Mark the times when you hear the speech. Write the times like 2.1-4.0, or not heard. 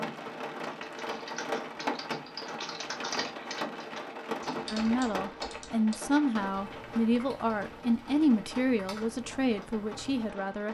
4.7-10.6.